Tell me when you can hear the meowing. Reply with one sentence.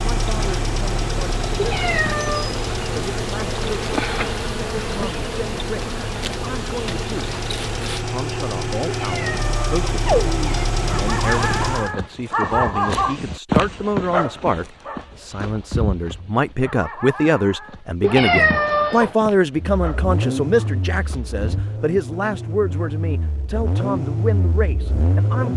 You can hear the meowing from 1.6 to 2.5 s, from 8.8 to 10.7 s and from 18.0 to 19.1 s.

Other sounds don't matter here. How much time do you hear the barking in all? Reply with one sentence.
The barking can be heard for 11 seconds in total.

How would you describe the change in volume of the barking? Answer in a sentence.
The loudness of the barking goes down.